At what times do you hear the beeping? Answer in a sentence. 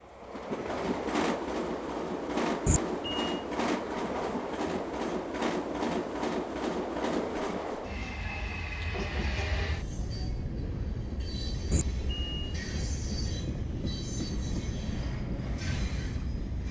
You can hear the beeping from 2.6 to 3.4 s and from 11.7 to 12.6 s.